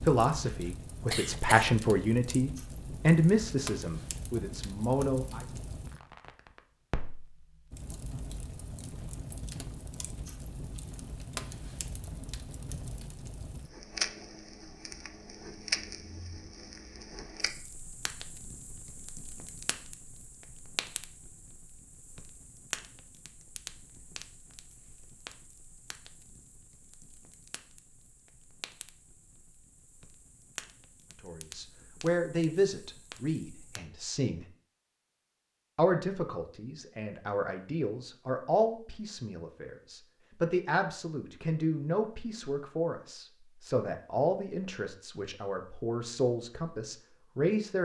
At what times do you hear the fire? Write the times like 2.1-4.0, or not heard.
0.0-33.8.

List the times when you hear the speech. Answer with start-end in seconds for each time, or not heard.
0.0-5.5, 31.2-34.5, 35.8-47.8.